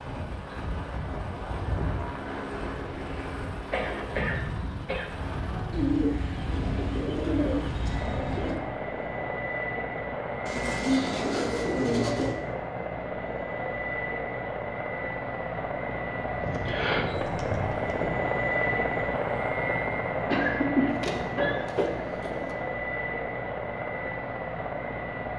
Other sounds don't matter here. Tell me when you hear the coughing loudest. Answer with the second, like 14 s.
21 s.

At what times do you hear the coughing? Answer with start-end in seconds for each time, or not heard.
3.7-5.1, 20.3-22.1.